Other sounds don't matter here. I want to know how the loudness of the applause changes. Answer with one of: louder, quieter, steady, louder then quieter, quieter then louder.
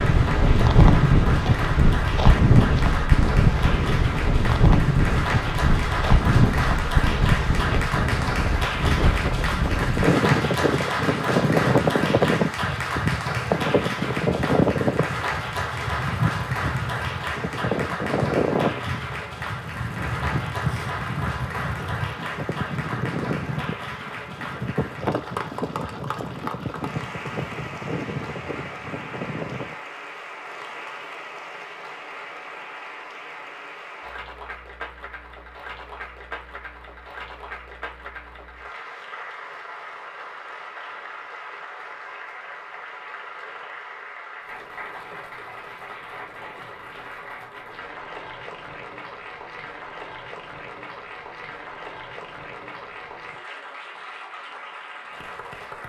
quieter.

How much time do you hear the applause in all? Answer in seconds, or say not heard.
56 s.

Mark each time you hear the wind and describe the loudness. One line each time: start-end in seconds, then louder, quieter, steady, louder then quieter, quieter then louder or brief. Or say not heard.
0.0-29.8 quieter.